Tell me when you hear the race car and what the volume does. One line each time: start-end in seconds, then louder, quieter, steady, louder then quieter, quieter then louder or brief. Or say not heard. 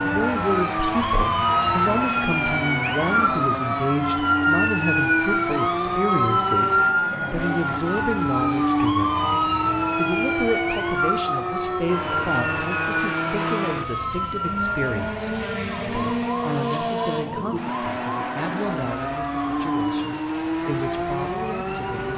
0.0-22.1 steady.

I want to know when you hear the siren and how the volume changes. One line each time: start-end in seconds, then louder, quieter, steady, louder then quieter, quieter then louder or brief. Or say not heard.
0.0-22.1 quieter.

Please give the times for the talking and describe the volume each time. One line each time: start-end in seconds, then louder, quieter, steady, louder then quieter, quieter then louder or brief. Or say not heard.
0.0-22.1 quieter.